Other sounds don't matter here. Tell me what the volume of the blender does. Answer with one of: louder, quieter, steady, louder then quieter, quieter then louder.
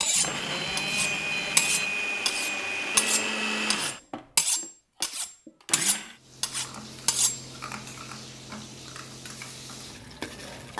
quieter.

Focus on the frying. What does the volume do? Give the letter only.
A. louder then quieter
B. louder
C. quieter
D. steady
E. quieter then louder
D.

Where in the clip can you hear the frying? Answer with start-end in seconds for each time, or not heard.
6.2-10.7.